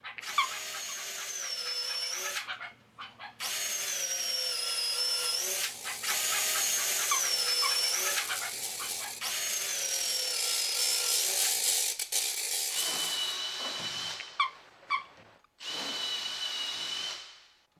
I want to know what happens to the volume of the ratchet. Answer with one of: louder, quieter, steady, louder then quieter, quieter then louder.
louder.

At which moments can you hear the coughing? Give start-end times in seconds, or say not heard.
not heard.